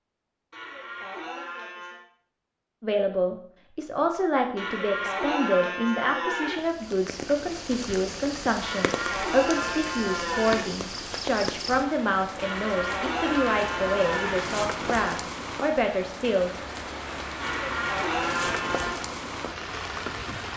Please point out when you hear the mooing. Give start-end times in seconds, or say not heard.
0.5-2.0, 4.5-6.6, 8.6-10.7, 12.4-14.4, 17.4-19.0.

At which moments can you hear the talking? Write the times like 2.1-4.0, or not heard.
2.8-16.5.